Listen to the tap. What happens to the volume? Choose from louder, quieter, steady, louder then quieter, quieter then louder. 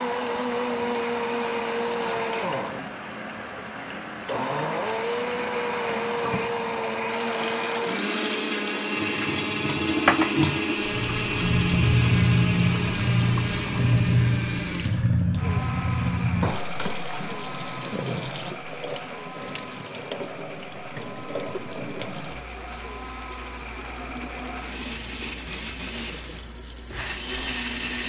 louder then quieter.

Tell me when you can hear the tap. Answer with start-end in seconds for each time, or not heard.
0.0-28.0.